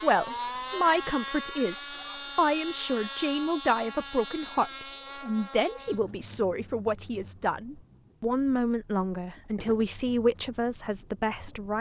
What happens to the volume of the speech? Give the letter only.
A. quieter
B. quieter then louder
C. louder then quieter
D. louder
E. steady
E.